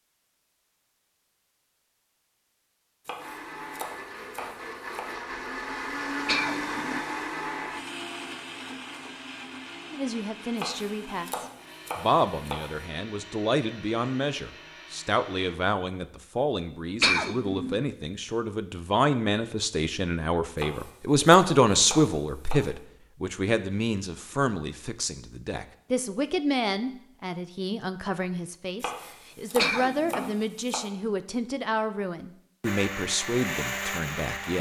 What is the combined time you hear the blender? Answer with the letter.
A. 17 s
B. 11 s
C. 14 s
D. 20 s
C.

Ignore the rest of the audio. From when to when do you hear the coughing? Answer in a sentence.
The coughing can be heard from 6.2 to 7.0 s, from 17.0 to 17.8 s and from 29.6 to 30.4 s.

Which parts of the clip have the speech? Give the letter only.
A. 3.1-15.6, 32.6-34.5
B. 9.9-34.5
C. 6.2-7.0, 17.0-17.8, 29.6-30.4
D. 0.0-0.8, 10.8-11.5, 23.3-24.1
B.